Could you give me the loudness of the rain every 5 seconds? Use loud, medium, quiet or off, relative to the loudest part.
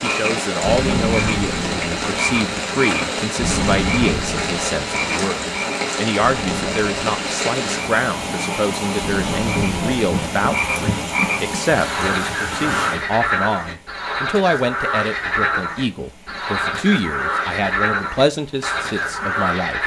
loud, loud, loud, quiet.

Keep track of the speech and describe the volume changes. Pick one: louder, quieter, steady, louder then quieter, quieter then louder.
steady.